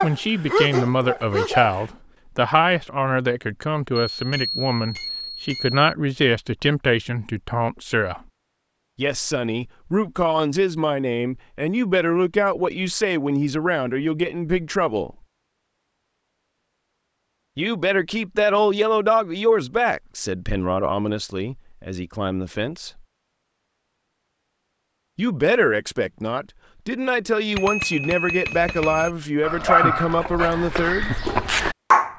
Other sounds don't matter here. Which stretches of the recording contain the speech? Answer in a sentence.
The speech can be heard from 0.0 to 8.2 s, from 8.9 to 15.2 s, from 17.6 to 23.0 s and from 25.1 to 31.1 s.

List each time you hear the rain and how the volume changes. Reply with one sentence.
You can't hear the rain here.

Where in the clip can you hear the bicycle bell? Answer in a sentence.
You can hear the bicycle bell from 4.2 to 5.8 s and from 27.6 to 29.1 s.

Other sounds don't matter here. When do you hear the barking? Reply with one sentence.
The barking can be heard from 0.0 to 1.8 s and from 29.4 to 32.1 s.